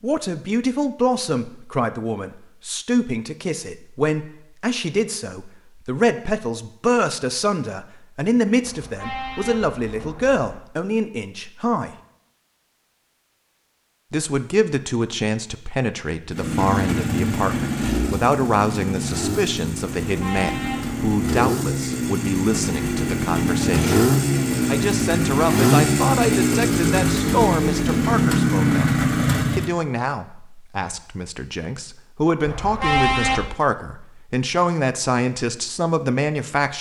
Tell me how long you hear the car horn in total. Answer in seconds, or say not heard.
4 s.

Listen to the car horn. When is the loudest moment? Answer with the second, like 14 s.
33 s.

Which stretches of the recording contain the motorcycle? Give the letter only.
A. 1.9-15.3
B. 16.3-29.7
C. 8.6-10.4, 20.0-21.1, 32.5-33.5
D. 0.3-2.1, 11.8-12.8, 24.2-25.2
B.